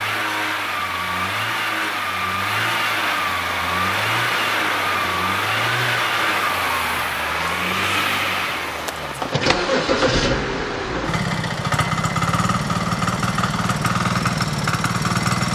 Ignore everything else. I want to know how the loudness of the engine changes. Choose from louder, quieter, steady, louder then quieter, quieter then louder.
steady.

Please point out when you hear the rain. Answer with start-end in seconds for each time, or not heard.
3.4-15.5.